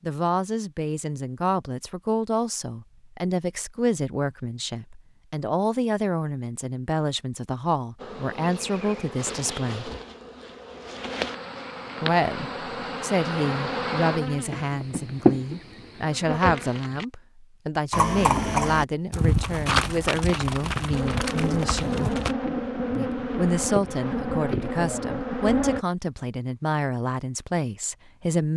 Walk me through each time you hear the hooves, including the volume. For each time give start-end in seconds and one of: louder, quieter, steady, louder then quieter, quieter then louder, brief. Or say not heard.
17.9-22.4 quieter.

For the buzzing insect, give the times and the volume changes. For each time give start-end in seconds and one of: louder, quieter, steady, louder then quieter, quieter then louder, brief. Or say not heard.
8.0-17.1 louder
20.9-25.9 steady.